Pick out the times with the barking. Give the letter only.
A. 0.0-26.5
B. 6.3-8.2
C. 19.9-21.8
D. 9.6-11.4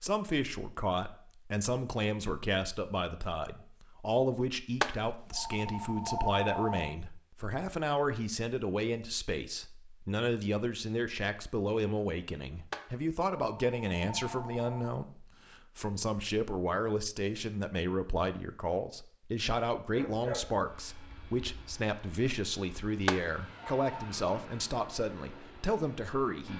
C.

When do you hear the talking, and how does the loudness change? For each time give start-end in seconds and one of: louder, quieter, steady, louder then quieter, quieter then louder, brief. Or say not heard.
0.0-26.5 steady.